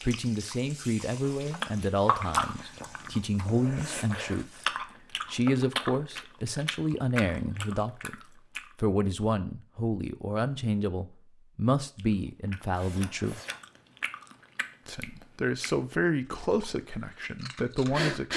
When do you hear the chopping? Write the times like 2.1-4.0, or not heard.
1.2-2.5.